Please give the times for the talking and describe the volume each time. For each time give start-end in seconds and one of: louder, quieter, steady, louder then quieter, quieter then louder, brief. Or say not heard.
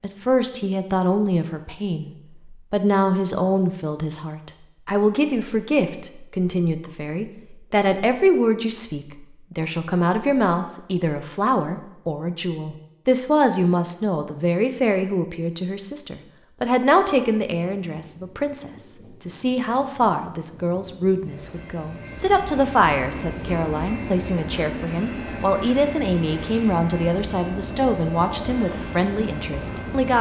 0.0-30.1 steady.